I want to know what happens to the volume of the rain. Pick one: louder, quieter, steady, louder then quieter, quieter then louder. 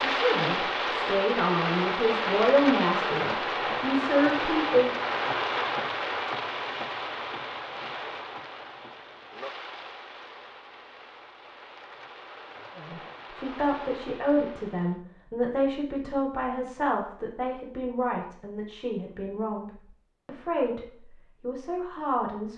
quieter.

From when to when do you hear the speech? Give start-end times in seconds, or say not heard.
0.0-4.9, 12.8-22.5.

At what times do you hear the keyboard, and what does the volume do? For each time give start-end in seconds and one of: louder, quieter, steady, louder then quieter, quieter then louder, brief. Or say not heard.
not heard.